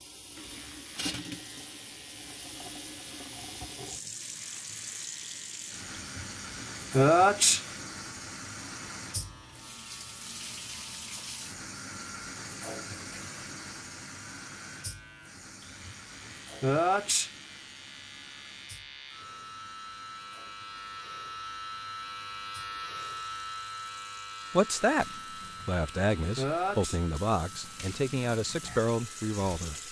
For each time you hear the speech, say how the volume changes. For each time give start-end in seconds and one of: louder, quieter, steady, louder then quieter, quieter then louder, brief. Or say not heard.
24.5-29.8 steady.